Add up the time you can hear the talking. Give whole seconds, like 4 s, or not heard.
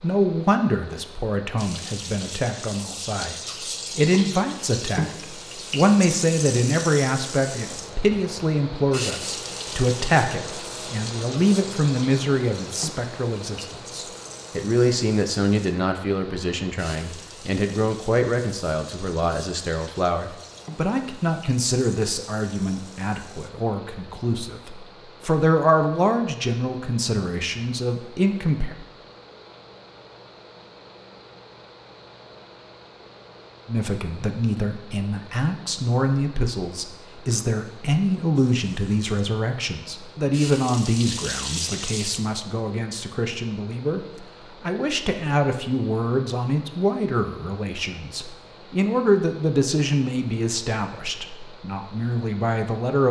48 s.